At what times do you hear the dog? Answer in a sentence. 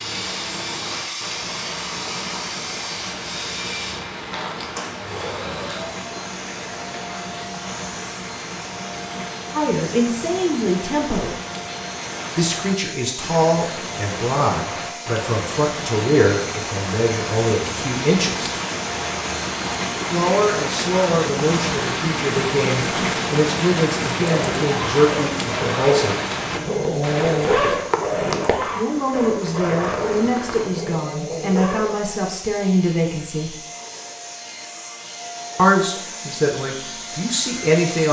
You can hear the dog from 24.4 to 31.9 s.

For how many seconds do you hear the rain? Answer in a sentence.
You can hear the rain for 31 seconds altogether.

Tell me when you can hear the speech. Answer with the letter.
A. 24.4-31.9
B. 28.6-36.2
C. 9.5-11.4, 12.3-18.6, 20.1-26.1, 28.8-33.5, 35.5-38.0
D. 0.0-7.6
C.